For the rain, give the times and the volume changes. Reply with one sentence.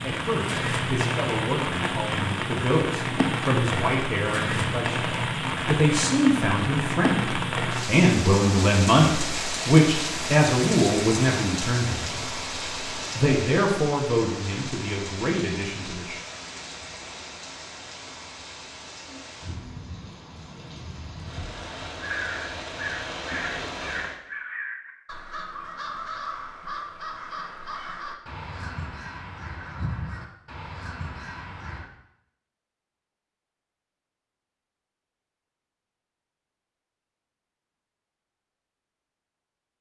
You can hear the rain from 0.0 to 24.2 s, getting quieter.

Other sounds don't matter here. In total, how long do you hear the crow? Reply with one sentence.
The crow can be heard for 10 seconds in total.